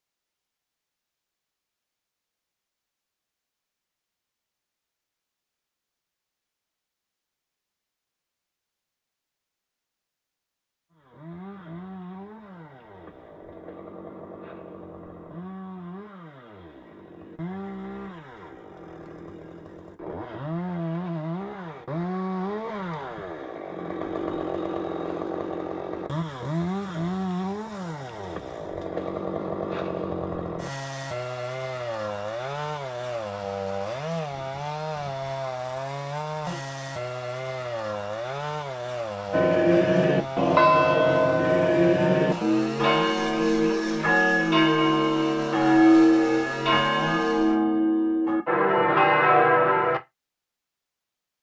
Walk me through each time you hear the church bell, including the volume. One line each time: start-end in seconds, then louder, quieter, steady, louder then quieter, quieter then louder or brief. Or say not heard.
39.3-50.0 steady.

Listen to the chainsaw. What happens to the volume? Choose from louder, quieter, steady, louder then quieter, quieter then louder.
louder.